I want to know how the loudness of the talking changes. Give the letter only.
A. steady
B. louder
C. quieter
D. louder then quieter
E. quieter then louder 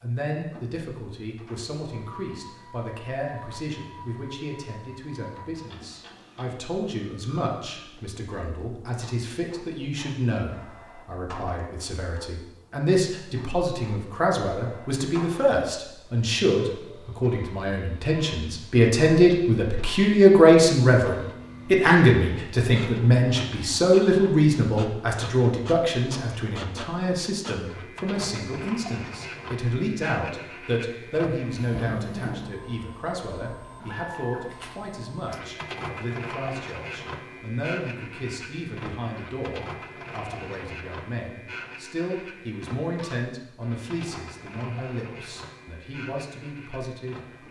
D.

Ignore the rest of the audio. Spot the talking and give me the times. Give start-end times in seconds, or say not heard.
0.0-47.4.